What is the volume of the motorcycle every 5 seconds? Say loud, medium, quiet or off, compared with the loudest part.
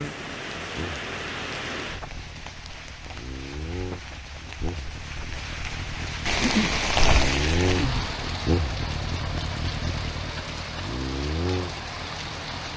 medium, loud, loud.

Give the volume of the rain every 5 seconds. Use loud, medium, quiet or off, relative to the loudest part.
medium, loud, medium.